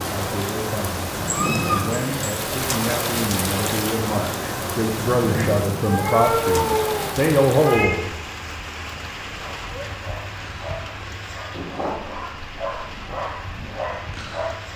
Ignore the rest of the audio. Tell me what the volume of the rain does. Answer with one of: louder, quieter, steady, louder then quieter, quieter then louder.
quieter.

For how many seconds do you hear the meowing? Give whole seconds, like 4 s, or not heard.
4 s.